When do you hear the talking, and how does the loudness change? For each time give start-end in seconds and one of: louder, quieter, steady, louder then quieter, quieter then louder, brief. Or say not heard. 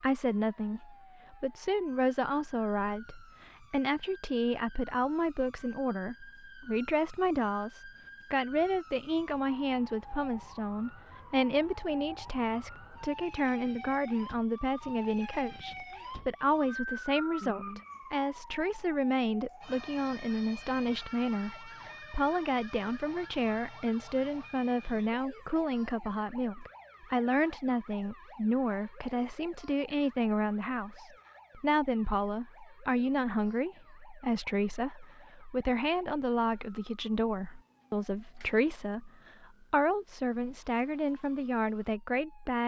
0.0-42.6 steady.